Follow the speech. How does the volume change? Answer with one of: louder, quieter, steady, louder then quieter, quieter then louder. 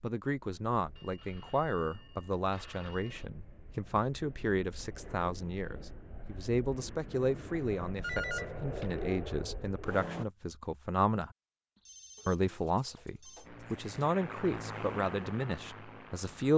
steady.